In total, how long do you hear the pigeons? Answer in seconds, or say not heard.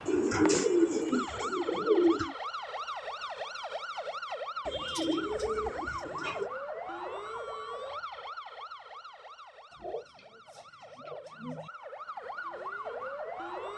6 s.